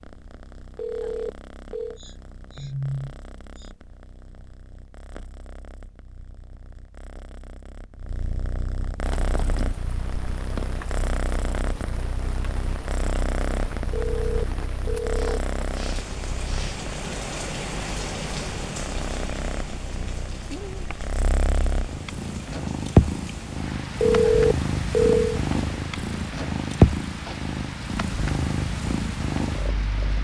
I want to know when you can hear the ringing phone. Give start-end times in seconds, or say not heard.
0.8-2.0, 13.9-15.4, 24.0-25.4.